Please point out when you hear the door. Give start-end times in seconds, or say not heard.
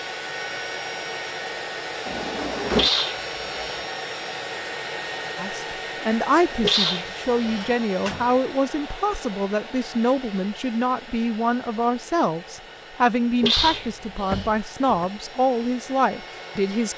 2.0-2.9, 7.6-8.3, 13.6-15.1.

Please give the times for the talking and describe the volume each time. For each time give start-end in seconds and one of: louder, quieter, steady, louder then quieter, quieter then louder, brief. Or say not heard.
5.3-16.9 steady.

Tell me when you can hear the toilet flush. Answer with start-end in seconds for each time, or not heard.
not heard.